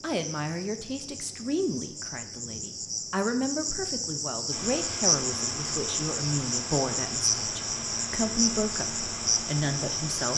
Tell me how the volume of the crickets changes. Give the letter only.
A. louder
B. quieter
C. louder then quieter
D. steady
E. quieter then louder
A.